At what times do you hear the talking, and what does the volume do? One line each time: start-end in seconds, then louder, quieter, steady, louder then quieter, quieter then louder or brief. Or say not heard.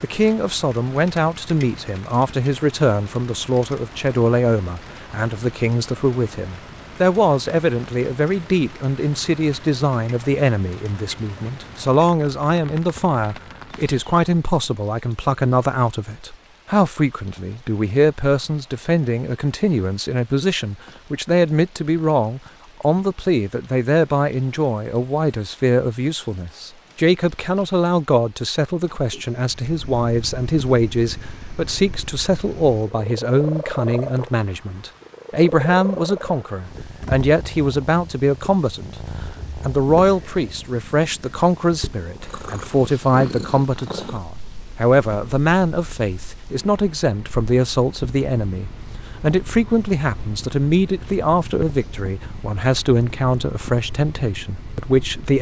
0.0-39.0 steady
39.6-55.3 steady.